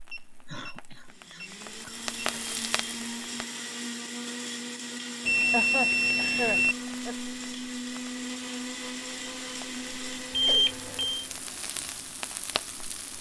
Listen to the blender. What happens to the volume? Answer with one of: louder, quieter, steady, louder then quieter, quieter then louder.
steady.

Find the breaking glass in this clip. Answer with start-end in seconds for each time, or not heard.
not heard.